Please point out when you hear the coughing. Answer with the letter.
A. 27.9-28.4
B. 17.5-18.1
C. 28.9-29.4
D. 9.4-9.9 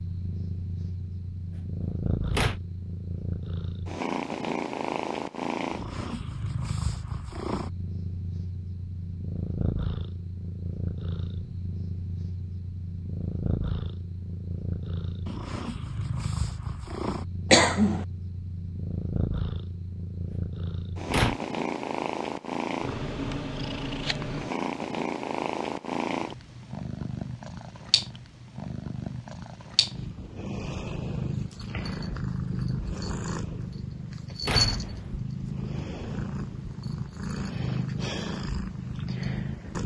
B.